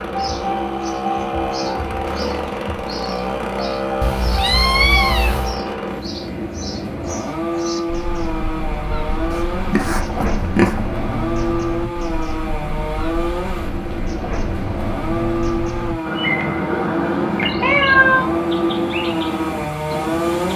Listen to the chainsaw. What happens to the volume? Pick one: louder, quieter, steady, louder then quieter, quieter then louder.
steady.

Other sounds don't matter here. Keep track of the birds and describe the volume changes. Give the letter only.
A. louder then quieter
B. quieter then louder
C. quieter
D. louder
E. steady
D.